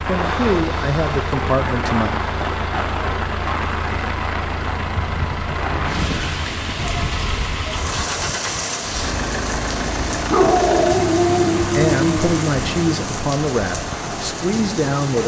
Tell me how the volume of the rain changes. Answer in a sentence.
The volume of the rain stays about the same.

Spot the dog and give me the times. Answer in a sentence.
You can hear the dog from 10.3 to 12.3 s.